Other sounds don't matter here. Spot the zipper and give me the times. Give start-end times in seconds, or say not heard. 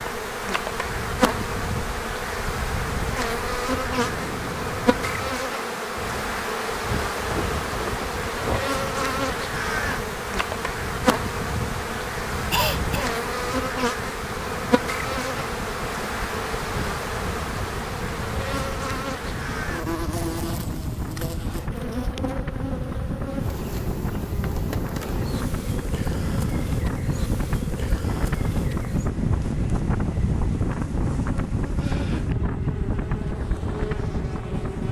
not heard.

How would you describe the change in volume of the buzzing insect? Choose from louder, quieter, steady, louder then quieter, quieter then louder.
quieter.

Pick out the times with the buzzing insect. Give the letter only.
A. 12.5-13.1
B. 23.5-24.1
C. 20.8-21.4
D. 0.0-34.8
D.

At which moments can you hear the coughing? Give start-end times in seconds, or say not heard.
12.5-13.1.